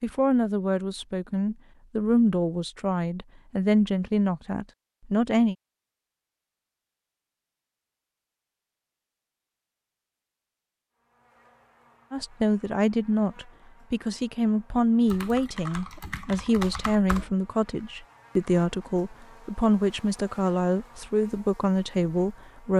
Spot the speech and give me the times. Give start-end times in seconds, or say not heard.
0.0-5.5, 12.1-22.7.